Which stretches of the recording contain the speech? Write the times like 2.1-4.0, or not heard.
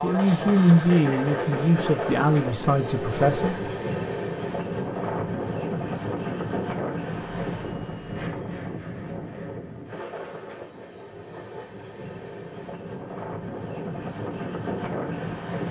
0.0-3.7.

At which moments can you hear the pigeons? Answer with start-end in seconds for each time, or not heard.
not heard.